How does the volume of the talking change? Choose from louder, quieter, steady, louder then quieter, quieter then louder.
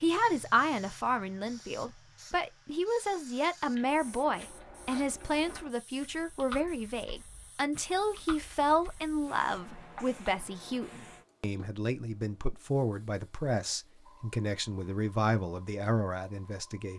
steady.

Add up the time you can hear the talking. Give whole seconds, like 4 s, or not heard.
17 s.